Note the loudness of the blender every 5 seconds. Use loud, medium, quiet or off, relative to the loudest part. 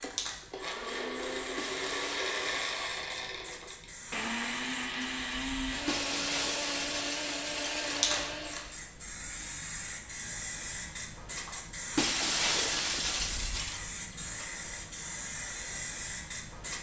loud, loud, off, off.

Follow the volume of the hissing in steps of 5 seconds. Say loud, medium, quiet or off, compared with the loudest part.
medium, loud, loud, loud.